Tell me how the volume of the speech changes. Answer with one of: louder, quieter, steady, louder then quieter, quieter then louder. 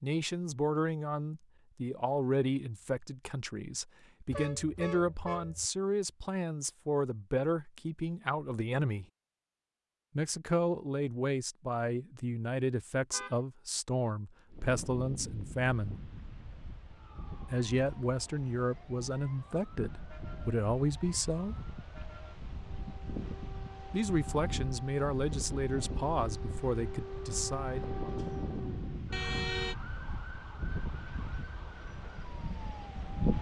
steady.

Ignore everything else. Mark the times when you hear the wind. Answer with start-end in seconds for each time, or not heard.
14.4-33.3.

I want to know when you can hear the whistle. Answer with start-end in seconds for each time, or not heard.
not heard.